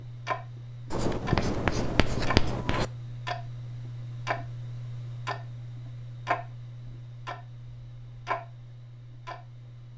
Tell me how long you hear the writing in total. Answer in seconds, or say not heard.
2 s.